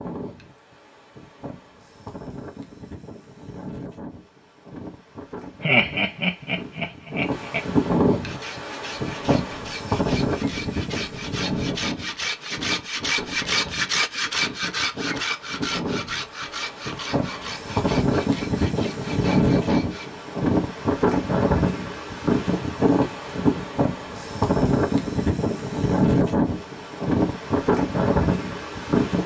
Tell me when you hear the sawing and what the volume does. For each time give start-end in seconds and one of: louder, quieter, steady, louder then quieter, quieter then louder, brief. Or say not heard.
8.2-20.1 louder then quieter.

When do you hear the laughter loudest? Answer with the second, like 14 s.
6 s.